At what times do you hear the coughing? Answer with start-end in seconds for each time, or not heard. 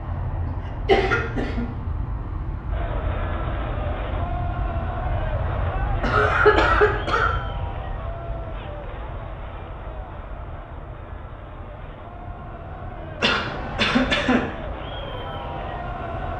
0.5-1.6, 6.0-7.3, 13.2-14.4.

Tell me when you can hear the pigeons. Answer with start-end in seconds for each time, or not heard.
not heard.